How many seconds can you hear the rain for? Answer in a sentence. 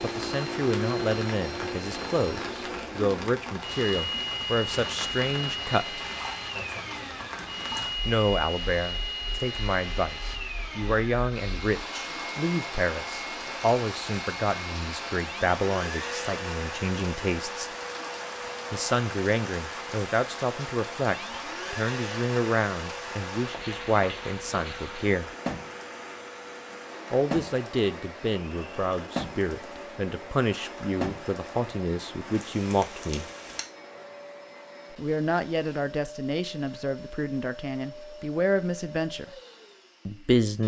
The rain can be heard for 34 seconds in total.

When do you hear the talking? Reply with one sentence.
The talking can be heard from 0.0 to 6.0 s, from 8.1 to 17.7 s, from 18.7 to 25.3 s, from 27.1 to 33.2 s, from 34.9 to 39.4 s and from 40.0 to 40.6 s.